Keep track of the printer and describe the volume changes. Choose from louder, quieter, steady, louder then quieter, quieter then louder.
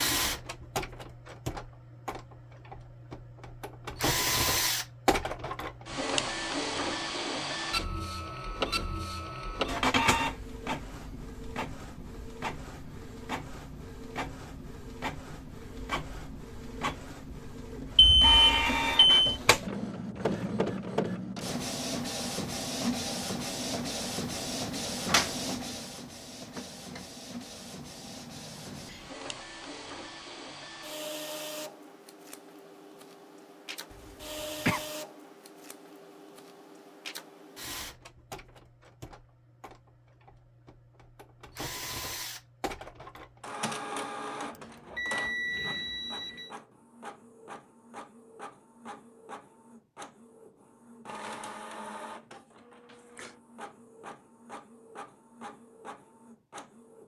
quieter.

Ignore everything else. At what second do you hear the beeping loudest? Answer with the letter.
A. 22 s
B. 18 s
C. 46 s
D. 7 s
B.